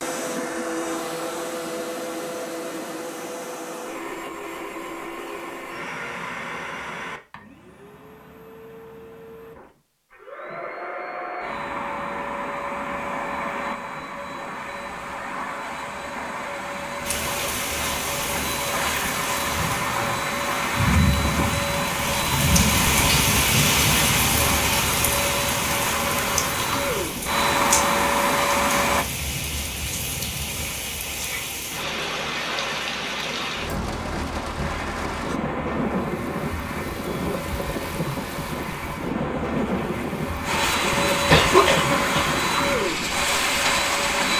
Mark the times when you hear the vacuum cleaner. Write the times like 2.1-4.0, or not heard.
0.0-29.1, 34.6-44.3.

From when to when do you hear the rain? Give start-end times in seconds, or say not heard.
17.1-44.3.